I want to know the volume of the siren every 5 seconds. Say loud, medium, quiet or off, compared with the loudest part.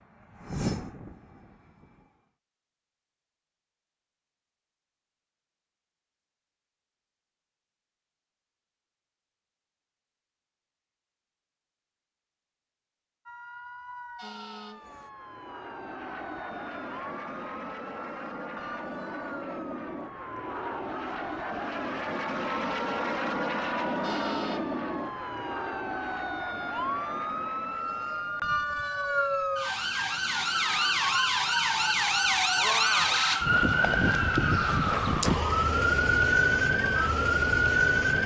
off, off, quiet, quiet, quiet, medium, loud, loud.